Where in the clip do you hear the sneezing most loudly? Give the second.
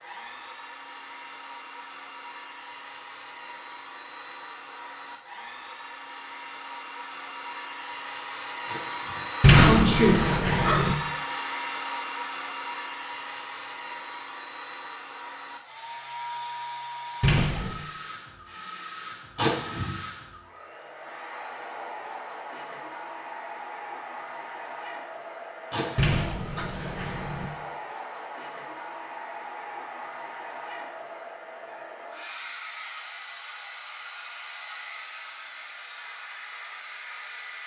10 s.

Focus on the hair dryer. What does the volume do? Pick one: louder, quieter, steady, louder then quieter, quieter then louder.
louder then quieter.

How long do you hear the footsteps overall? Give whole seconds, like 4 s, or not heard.
not heard.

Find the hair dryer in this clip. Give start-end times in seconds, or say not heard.
0.0-37.6.